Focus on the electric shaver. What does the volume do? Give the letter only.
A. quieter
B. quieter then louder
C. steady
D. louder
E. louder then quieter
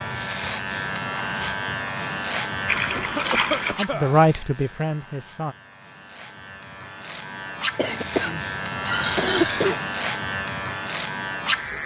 B.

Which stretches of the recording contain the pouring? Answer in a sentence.
You can hear the pouring from 2.6 to 3.8 s and from 8.8 to 9.8 s.